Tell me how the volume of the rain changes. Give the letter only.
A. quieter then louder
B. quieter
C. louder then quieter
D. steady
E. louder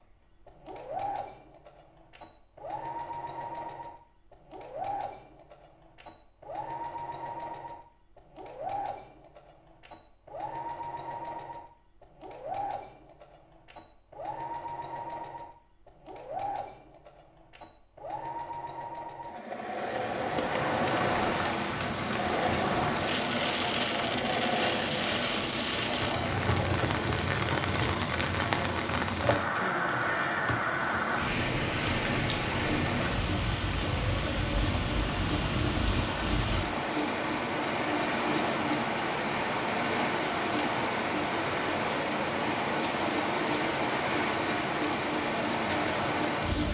D.